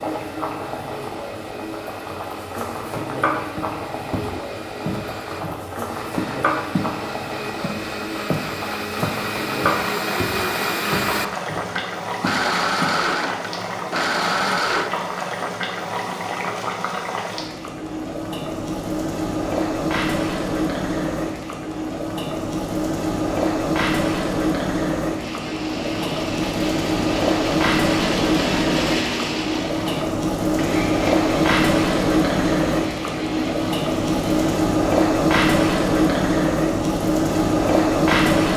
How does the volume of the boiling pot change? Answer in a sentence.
The loudness of the boiling pot goes up.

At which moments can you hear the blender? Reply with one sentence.
You can hear the blender from 0.0 to 14.9 s and from 25.1 to 34.6 s.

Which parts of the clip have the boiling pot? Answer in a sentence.
The boiling pot can be heard from 0.0 to 38.5 s.